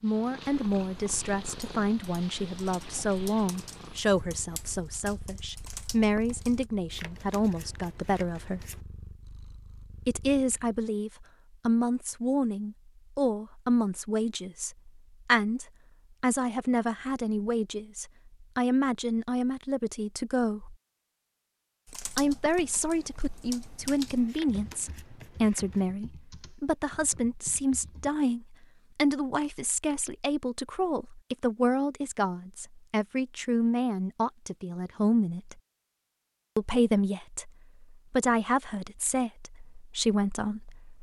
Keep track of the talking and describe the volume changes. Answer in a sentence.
The volume of the talking stays about the same.